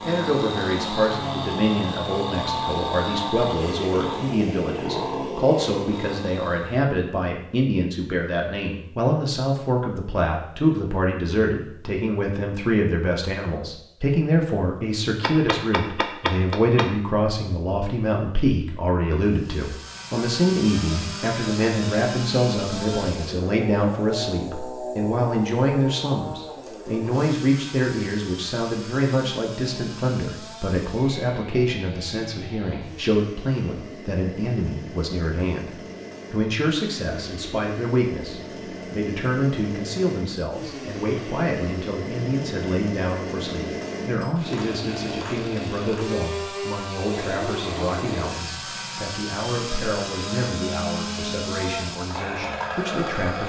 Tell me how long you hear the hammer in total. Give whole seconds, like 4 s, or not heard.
2 s.